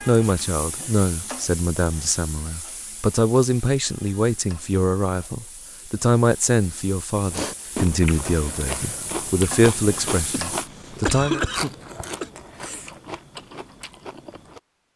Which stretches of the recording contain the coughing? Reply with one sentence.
The coughing can be heard from 10.3 to 12.3 s.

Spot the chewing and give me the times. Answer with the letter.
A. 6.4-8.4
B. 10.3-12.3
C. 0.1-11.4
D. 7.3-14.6
D.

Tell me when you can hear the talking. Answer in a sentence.
The talking can be heard from 0.1 to 11.4 s.